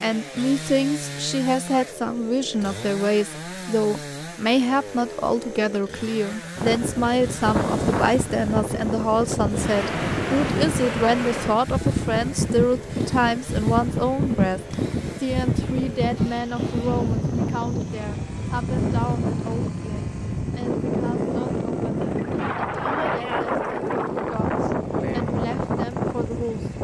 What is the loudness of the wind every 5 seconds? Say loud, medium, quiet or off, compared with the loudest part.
off, loud, loud, loud, loud, loud.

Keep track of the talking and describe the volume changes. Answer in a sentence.
The volume of the talking goes down.